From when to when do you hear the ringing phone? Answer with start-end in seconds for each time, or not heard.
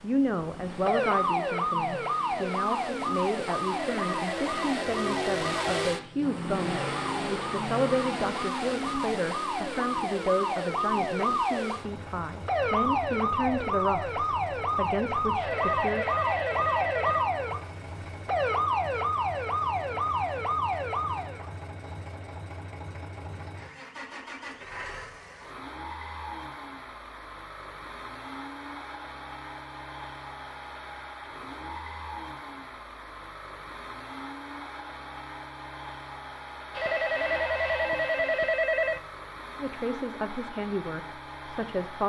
3.7-5.7, 15.4-17.3, 36.8-39.0.